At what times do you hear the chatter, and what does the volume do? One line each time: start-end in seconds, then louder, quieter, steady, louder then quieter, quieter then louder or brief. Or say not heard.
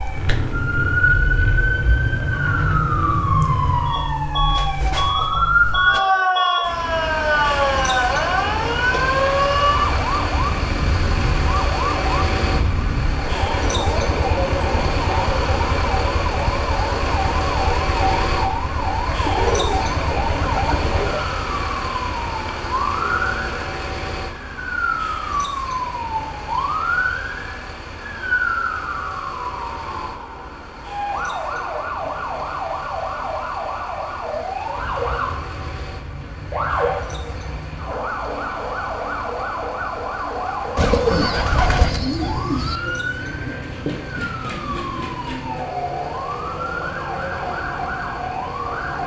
not heard.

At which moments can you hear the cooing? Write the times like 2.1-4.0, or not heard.
19.2-21.2, 40.8-42.8.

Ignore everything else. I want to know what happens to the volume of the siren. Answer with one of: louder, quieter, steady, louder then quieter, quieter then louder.
quieter.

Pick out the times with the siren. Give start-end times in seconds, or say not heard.
0.0-49.0.